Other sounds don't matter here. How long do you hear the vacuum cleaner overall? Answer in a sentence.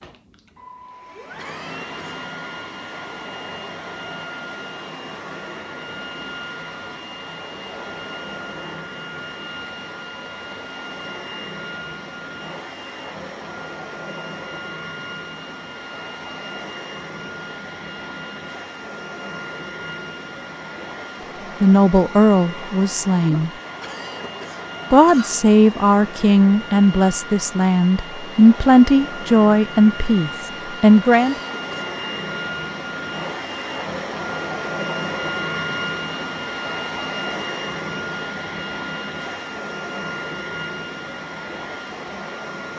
The vacuum cleaner can be heard for 43 seconds in total.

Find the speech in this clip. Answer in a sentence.
You can hear the speech from 21.6 to 23.5 s and from 24.9 to 31.4 s.